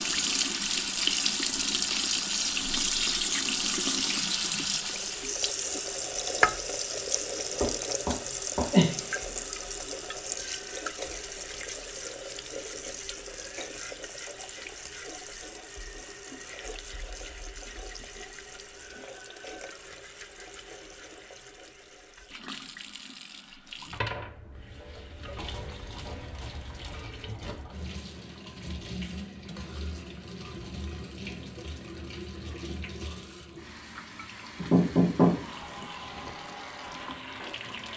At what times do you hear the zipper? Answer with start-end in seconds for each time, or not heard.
not heard.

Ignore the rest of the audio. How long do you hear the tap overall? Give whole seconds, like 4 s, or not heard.
38 s.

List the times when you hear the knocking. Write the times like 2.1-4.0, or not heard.
7.6-9.1, 34.5-36.2.